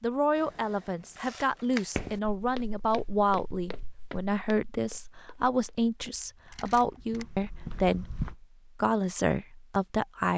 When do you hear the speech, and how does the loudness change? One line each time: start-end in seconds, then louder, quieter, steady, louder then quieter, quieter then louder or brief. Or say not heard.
0.0-10.3 steady.